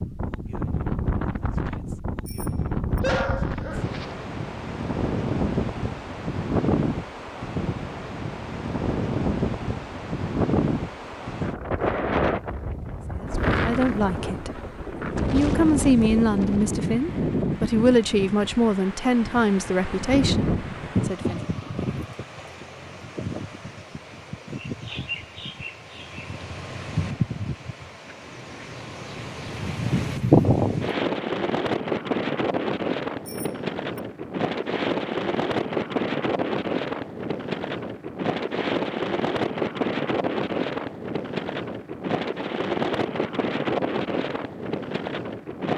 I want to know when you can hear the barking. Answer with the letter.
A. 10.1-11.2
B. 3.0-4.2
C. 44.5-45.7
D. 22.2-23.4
B.